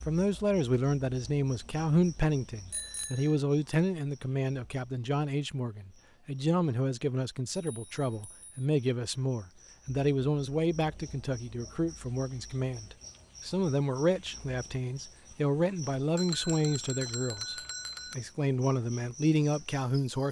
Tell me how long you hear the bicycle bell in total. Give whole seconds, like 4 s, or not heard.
4 s.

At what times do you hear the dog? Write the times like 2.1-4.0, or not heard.
not heard.